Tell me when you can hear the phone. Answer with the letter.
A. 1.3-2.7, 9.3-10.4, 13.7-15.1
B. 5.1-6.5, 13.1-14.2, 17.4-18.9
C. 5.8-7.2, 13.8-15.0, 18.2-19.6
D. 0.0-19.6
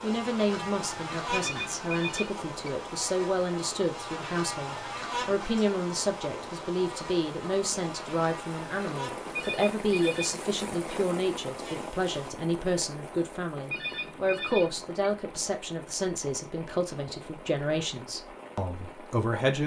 A.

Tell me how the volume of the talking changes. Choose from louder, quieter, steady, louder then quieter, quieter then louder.
steady.